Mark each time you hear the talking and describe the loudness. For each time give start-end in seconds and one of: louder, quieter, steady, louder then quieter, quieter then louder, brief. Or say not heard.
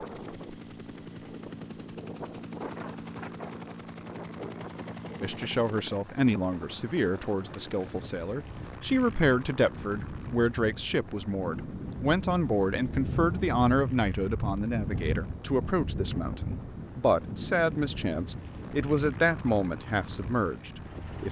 5.2-21.2 steady.